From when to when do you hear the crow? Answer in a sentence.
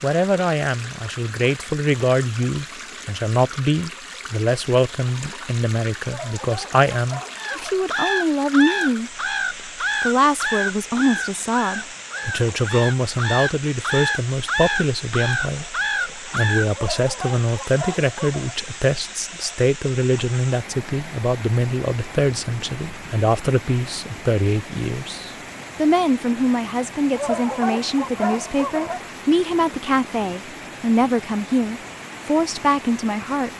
The crow can be heard from 7.3 to 16.7 s.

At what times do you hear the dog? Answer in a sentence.
You can hear the dog from 6.0 to 7.8 s, from 16.7 to 18.6 s and from 27.1 to 29.1 s.